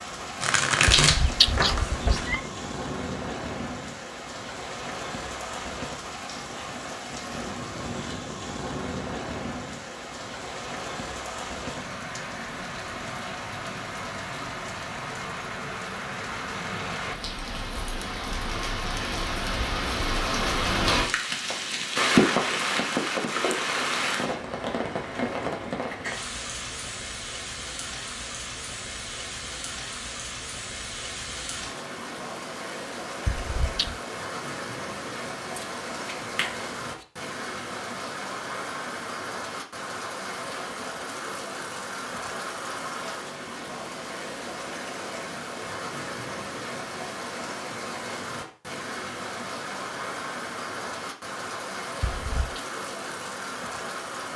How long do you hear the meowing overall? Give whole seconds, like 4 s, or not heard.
3 s.